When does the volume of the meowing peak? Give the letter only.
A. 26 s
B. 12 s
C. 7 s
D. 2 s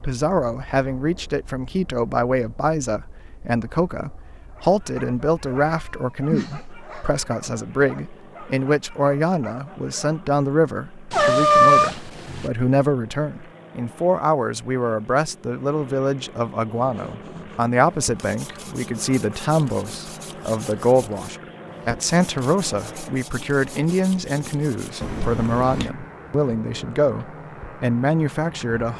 B.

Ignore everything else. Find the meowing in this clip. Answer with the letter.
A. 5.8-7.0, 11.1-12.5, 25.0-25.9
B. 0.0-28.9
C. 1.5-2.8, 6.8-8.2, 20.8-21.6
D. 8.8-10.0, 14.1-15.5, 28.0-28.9
A.